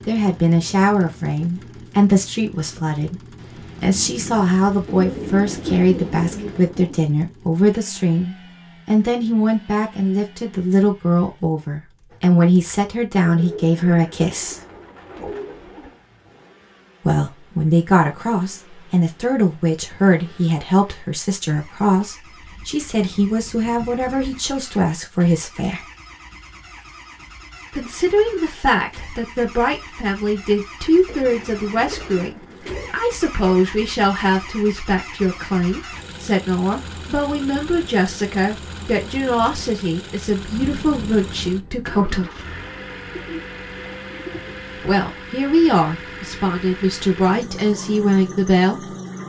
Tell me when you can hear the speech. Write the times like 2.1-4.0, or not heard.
0.1-3.2, 3.8-14.6, 17.0-25.9, 27.7-42.3, 44.8-49.0.